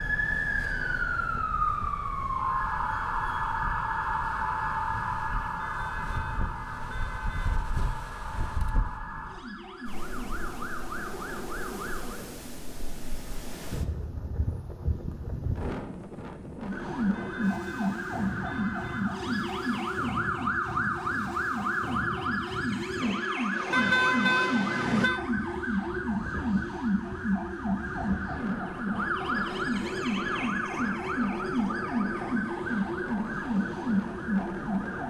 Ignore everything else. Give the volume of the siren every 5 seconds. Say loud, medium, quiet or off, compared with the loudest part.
loud, medium, medium, loud, loud, loud, loud.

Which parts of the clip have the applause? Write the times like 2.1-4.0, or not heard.
not heard.